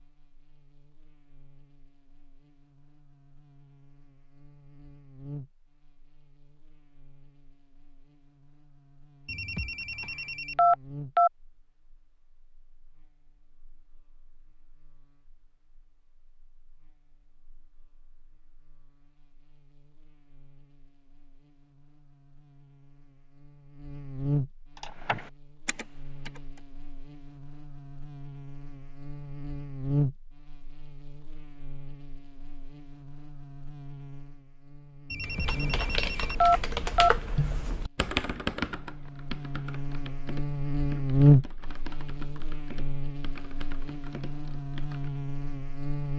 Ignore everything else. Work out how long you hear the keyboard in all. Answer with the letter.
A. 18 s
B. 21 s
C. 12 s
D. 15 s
C.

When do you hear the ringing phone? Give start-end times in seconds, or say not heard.
9.2-11.3, 35.1-37.1.